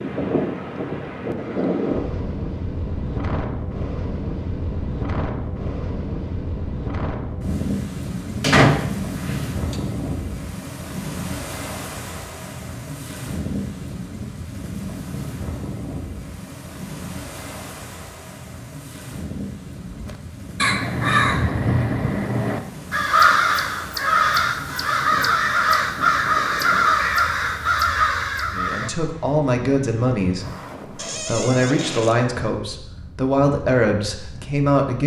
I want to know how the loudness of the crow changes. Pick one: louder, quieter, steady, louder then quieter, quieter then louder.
steady.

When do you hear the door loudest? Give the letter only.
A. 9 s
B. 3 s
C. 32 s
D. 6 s
A.